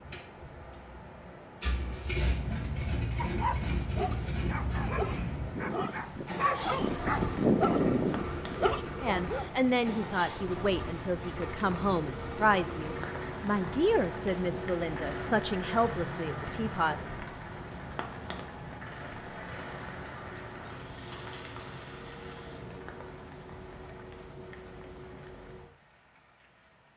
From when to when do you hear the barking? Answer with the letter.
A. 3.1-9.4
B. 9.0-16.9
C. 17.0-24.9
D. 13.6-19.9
A.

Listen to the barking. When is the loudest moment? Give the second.
8 s.